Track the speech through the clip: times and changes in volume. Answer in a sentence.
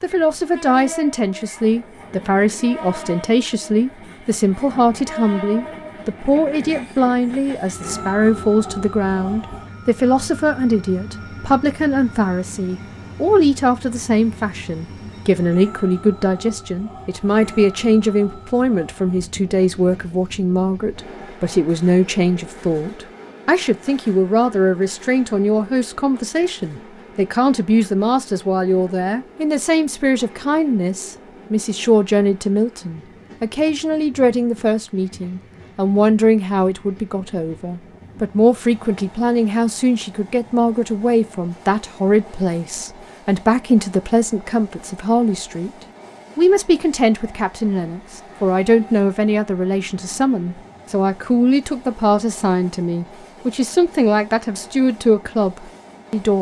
You can hear the speech from 0.0 to 45.7 s, at a steady volume; and from 46.4 to 56.3 s, at a steady volume.